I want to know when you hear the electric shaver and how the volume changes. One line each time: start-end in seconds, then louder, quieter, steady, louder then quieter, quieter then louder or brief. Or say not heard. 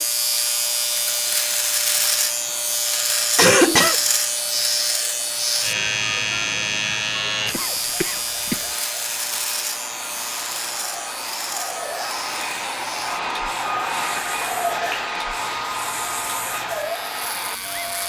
0.0-18.0 quieter.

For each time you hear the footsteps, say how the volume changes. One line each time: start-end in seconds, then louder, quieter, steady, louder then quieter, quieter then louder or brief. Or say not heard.
not heard.